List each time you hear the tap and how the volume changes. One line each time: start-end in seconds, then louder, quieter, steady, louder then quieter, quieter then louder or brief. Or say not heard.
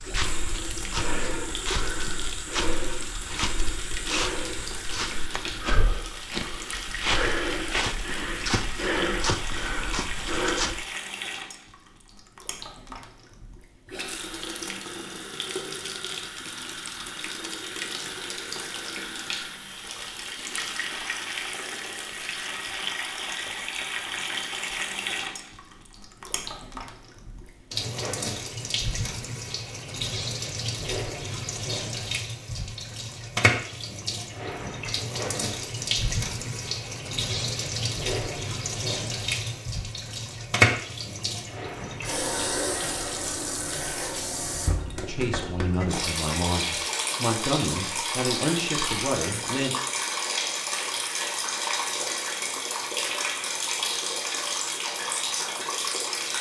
0.0-56.3 louder.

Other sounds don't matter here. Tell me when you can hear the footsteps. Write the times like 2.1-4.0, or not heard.
0.0-10.8.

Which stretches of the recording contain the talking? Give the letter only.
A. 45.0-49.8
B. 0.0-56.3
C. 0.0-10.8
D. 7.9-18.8
A.